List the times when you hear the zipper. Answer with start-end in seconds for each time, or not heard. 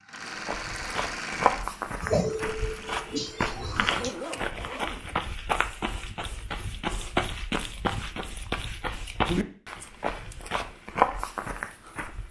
3.5-5.0.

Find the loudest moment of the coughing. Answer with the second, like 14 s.
2 s.